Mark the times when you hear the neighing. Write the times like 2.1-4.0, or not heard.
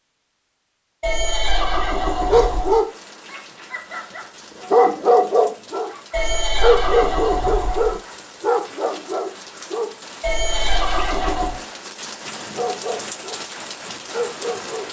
1.0-2.8, 6.1-8.0, 10.2-11.6.